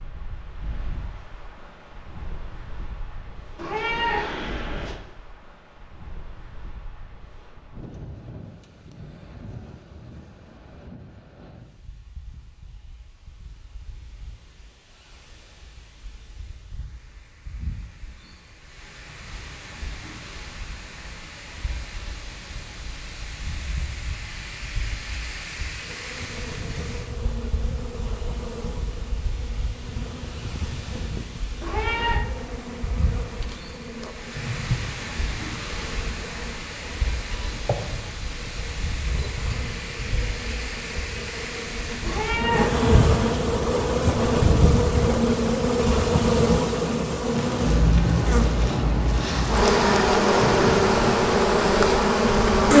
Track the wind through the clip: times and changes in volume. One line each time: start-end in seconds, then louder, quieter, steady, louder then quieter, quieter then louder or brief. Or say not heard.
0.0-52.7 louder.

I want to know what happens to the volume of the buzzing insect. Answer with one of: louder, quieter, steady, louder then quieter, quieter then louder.
louder.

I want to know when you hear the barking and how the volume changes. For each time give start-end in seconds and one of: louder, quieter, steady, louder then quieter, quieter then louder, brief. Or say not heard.
not heard.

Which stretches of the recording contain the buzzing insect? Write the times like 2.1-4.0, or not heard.
25.8-52.7.